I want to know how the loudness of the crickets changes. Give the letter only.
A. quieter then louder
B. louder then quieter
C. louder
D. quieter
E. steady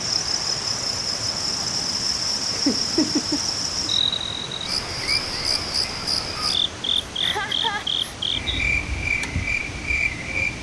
E.